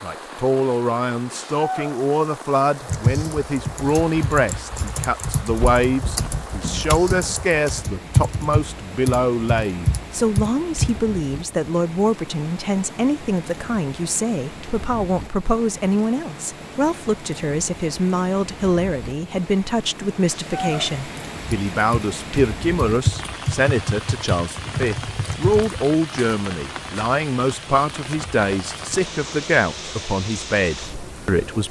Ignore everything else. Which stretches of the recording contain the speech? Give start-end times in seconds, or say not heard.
0.0-31.6.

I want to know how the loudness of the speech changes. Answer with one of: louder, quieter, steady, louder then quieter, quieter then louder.
steady.